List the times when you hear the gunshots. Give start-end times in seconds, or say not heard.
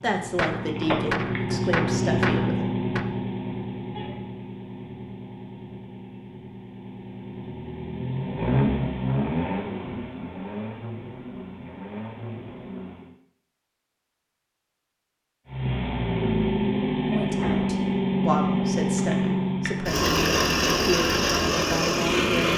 0.3-3.1.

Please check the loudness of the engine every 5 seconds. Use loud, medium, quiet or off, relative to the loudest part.
medium, medium, quiet, loud, loud.